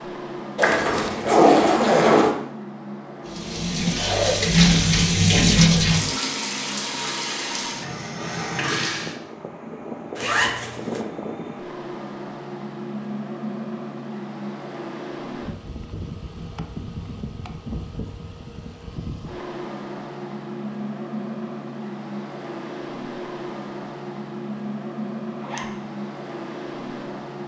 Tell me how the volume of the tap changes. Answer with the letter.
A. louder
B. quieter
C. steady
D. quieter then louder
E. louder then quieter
B.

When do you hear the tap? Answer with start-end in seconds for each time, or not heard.
3.2-9.2.